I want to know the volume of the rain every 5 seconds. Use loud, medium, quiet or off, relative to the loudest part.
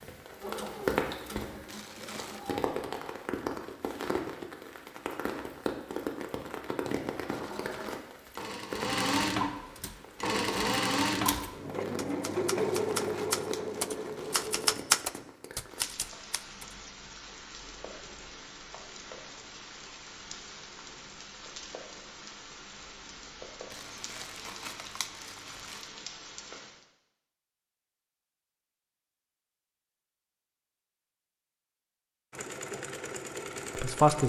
loud, loud, medium, medium, medium, medium, off.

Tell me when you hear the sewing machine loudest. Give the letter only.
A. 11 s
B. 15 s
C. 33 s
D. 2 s
A.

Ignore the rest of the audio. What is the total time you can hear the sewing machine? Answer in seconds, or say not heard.
12 s.